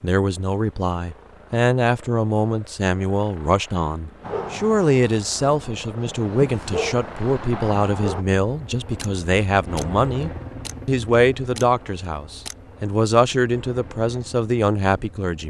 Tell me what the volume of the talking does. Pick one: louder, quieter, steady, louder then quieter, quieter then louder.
steady.